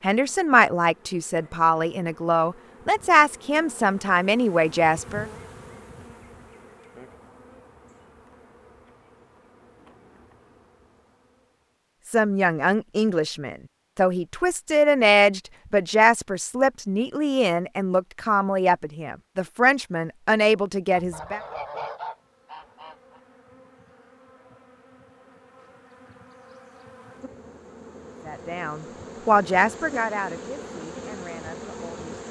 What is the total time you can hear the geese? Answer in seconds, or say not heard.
2 s.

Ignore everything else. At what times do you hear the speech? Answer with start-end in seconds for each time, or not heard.
0.0-5.2, 12.1-21.4, 28.2-32.2.